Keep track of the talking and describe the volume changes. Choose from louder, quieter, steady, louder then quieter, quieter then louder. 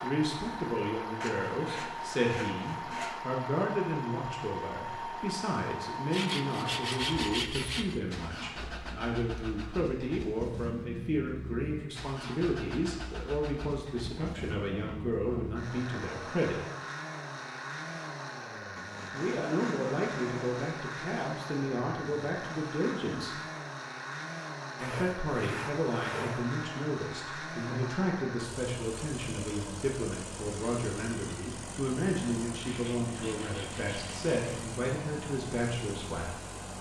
steady.